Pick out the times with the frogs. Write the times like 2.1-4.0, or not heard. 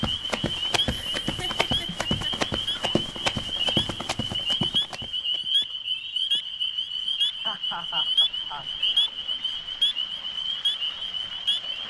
0.1-11.8.